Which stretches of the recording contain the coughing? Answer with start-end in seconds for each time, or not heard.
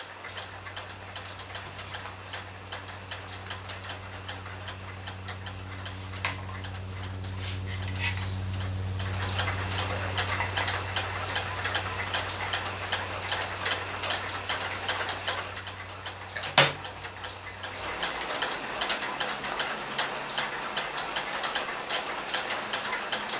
not heard.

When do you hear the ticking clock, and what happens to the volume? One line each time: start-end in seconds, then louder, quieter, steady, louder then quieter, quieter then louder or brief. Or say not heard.
0.0-23.3 louder.